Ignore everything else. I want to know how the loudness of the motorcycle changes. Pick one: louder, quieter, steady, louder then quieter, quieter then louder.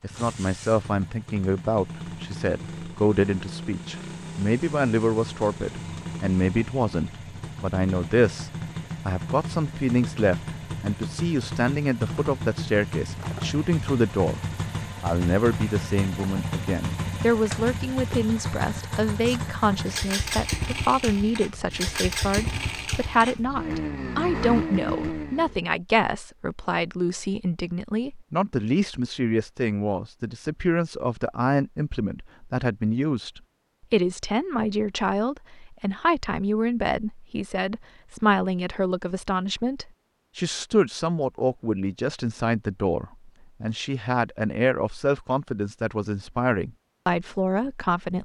louder.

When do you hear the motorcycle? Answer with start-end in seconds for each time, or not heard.
0.0-25.6.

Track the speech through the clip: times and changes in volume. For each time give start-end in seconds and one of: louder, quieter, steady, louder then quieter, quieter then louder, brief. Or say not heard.
0.0-14.4 steady
15.0-48.1 steady.